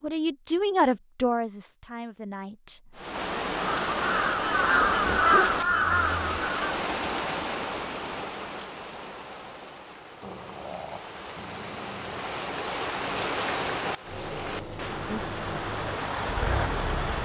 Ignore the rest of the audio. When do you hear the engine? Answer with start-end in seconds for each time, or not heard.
14.1-17.2.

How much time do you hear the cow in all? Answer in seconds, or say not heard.
not heard.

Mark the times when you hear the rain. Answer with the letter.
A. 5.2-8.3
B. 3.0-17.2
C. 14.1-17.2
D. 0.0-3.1
B.